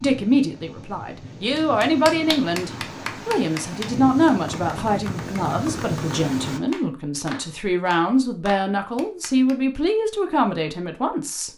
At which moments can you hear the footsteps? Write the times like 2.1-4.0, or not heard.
not heard.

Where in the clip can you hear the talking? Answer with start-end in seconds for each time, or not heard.
0.0-11.5.